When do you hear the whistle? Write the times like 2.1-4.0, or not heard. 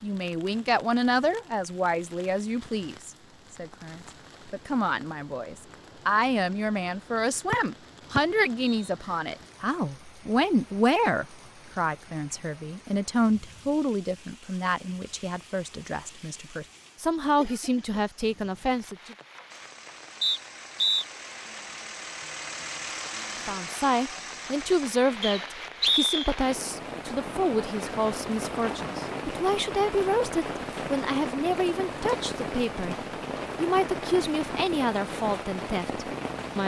8.2-8.8, 20.2-21.1, 25.2-26.4.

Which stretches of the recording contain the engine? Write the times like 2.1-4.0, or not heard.
19.4-24.9.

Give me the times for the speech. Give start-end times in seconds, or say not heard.
0.0-19.1, 23.4-33.0, 33.5-36.6.